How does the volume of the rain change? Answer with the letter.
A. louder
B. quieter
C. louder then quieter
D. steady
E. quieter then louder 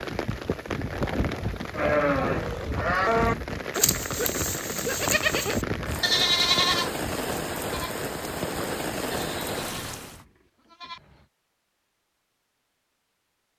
D.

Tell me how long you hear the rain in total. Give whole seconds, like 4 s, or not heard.
10 s.